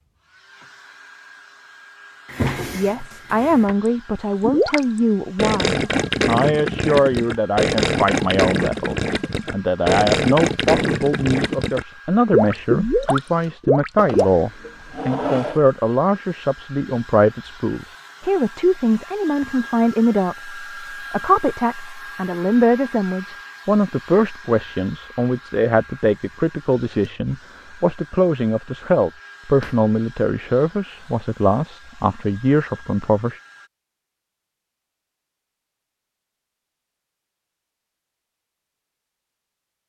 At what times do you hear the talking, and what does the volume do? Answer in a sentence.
You can hear the talking from 2.7 to 33.4 s, at a steady volume.